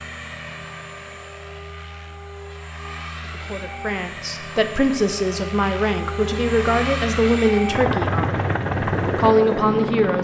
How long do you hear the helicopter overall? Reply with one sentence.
The helicopter can be heard for 10 seconds in total.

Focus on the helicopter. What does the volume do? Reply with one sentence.
The loudness of the helicopter goes up.